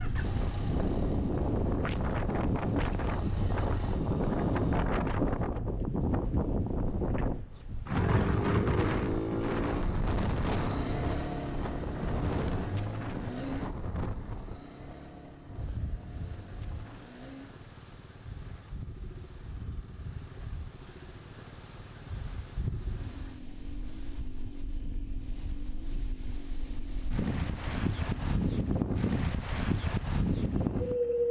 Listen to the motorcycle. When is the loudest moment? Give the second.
9 s.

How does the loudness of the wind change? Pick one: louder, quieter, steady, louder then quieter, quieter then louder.
quieter then louder.